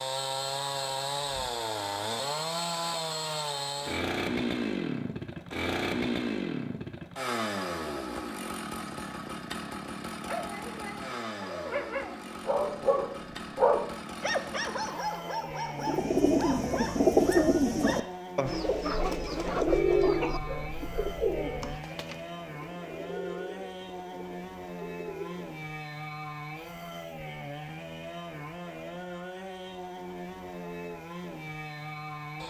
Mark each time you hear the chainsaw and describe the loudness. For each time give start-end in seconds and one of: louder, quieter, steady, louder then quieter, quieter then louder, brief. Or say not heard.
0.0-32.4 quieter.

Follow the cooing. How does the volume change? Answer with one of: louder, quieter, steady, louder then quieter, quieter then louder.
quieter.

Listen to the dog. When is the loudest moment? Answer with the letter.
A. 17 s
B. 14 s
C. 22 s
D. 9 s
B.